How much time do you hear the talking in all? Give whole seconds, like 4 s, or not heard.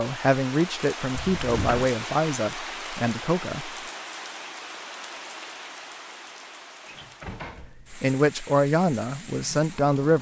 6 s.